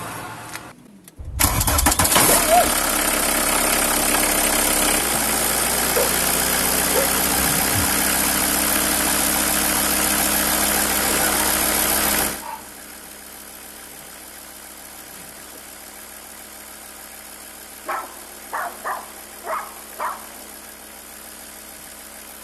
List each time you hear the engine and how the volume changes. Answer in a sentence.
You can hear the engine from 0.0 to 22.3 s, getting quieter.